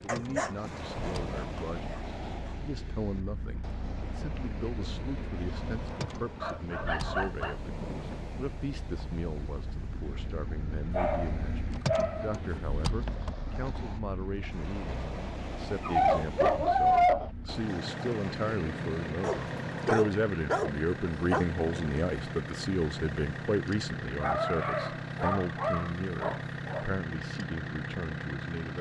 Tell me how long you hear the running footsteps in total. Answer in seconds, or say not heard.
not heard.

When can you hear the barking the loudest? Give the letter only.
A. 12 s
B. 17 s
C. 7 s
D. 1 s
B.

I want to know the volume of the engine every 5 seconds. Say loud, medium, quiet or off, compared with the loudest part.
medium, medium, loud, loud, loud, loud.